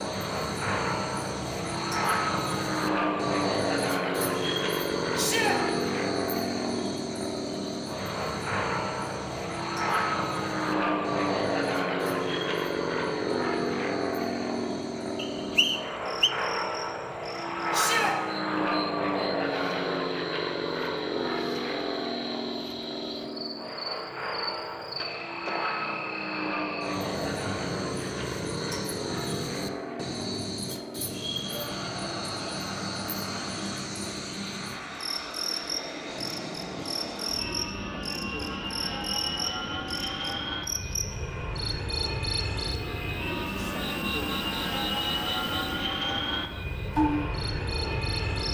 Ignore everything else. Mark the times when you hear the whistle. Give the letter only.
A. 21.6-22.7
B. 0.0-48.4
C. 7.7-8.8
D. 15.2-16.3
D.